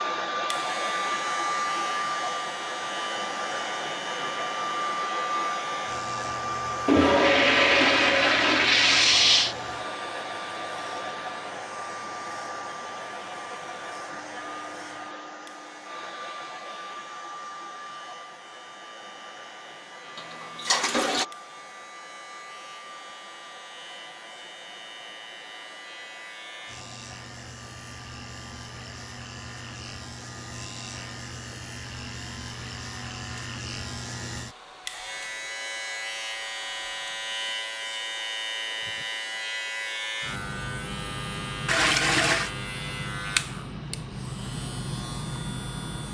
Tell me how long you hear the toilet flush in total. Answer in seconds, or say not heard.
5 s.